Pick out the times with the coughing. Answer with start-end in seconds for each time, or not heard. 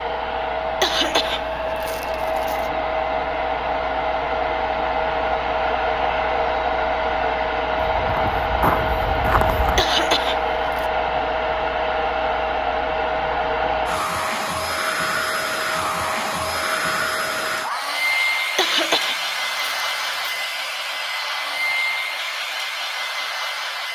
0.8-2.7, 9.8-10.8, 18.6-20.4.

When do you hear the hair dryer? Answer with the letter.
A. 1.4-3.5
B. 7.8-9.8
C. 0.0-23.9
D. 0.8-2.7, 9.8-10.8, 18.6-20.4
C.